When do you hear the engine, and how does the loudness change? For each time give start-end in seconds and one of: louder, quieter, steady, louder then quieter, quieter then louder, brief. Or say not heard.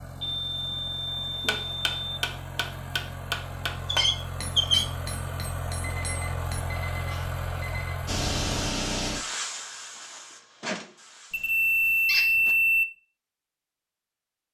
0.0-8.7 louder.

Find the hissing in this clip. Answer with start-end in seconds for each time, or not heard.
8.1-12.6.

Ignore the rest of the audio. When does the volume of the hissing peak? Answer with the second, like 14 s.
9 s.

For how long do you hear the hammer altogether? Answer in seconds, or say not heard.
5 s.